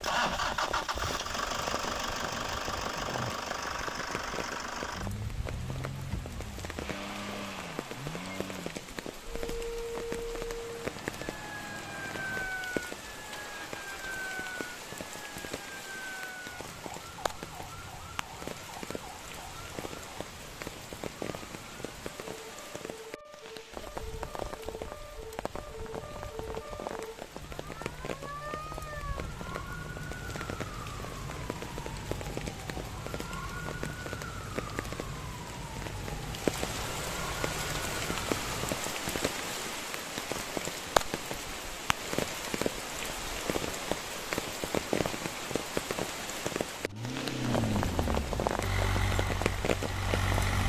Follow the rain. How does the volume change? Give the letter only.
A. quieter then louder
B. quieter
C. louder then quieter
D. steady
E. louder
E.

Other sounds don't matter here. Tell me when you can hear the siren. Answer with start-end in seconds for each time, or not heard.
9.2-38.8.